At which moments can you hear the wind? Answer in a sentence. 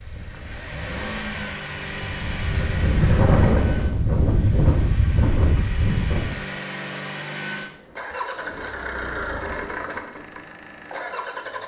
The wind can be heard from 0.0 to 6.4 s.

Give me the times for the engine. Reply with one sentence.
You can hear the engine from 0.0 to 11.6 s.